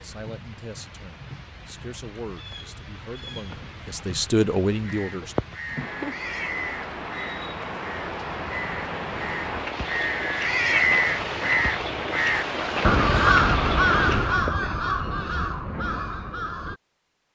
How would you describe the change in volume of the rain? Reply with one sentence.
The volume of the rain goes up.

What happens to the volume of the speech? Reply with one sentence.
The loudness of the speech goes up.